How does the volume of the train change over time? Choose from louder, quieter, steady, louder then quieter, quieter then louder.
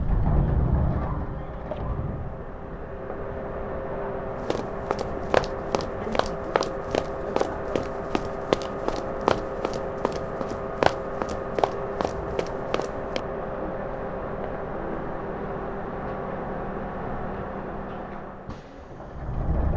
steady.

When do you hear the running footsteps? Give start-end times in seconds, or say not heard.
4.5-13.2.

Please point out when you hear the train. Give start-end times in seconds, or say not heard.
0.0-19.7.